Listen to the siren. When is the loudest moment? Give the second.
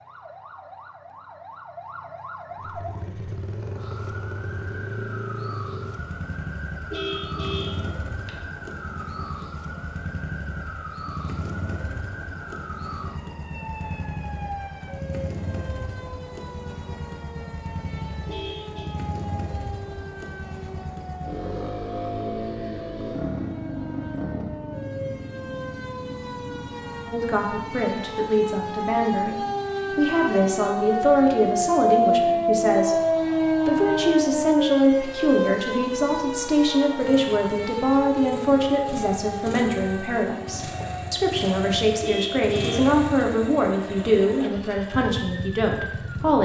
32 s.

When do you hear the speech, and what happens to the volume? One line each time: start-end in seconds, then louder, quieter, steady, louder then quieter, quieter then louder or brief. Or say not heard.
27.1-46.4 steady.